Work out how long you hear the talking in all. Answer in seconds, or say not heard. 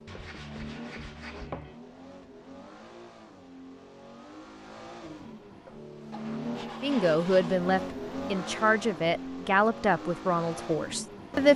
5 s.